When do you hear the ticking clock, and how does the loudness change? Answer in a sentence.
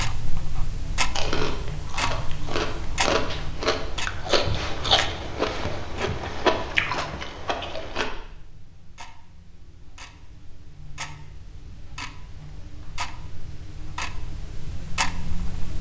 The ticking clock can be heard from 0.0 to 15.7 s, getting quieter then louder.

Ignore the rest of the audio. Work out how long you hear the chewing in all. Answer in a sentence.
You can hear the chewing for 7 seconds altogether.